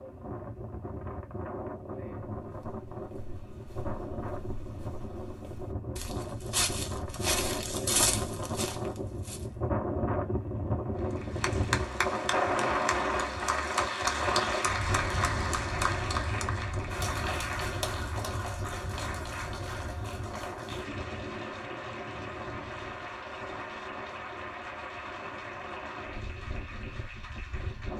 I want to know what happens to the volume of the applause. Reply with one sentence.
The volume of the applause goes down.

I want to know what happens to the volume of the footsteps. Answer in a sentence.
The loudness of the footsteps goes up.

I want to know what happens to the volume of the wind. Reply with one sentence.
The loudness of the wind goes up, then down.